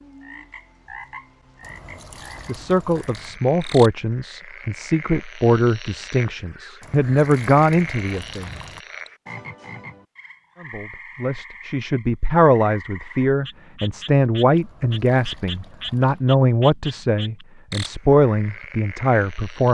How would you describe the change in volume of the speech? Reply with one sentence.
The volume of the speech stays about the same.